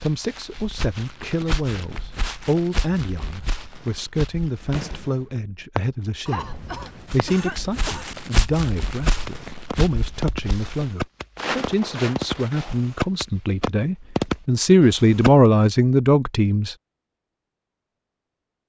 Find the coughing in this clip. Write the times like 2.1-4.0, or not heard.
6.2-8.1.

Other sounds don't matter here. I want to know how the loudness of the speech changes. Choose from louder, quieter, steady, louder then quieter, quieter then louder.
louder.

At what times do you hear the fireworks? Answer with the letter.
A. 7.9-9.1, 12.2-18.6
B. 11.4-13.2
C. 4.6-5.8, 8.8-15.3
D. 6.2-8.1
C.